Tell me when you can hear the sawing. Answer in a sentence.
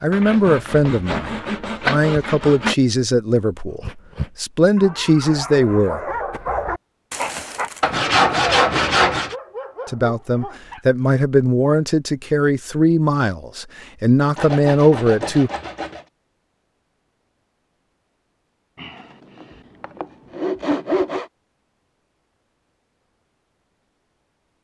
You can hear the sawing from 0.1 to 2.8 s, from 7.8 to 9.3 s, from 14.3 to 16.1 s and from 18.8 to 21.3 s.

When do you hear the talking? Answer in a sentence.
You can hear the talking from 0.0 to 6.0 s and from 9.8 to 15.5 s.